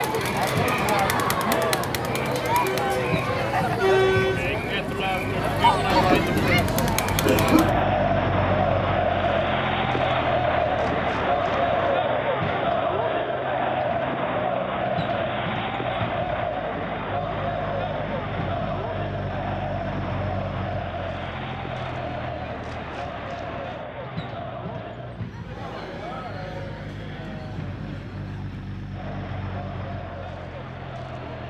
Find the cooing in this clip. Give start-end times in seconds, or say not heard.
not heard.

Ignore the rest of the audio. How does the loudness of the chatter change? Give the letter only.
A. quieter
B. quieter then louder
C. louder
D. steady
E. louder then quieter
A.